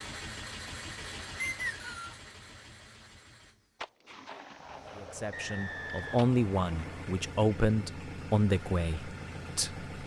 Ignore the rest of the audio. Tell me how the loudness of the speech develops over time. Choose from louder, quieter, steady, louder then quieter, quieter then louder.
louder then quieter.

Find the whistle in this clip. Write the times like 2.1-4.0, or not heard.
1.4-2.2, 5.3-7.0.